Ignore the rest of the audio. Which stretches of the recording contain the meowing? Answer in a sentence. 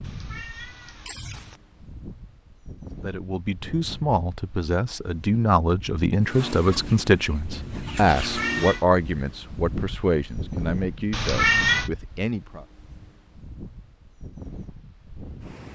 The meowing can be heard from 0.0 to 1.6 s, from 8.1 to 8.8 s and from 11.1 to 11.9 s.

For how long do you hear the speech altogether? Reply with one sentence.
The speech can be heard for 10 seconds in total.